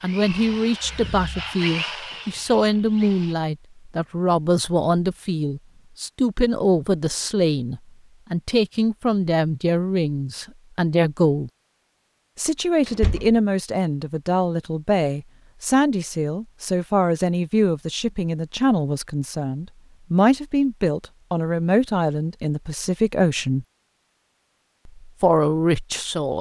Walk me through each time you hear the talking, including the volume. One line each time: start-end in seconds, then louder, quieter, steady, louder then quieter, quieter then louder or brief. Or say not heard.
0.0-11.5 steady
12.3-23.6 steady
25.0-26.3 brief.